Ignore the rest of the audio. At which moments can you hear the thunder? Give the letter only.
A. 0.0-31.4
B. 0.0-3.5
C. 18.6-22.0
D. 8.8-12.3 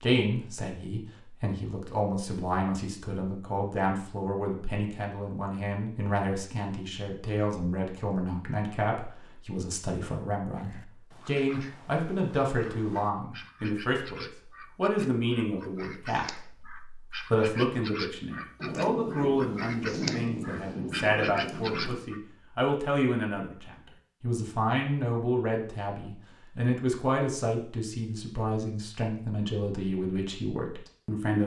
C.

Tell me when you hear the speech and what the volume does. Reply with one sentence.
The speech can be heard from 0.0 to 31.4 s, at a steady volume.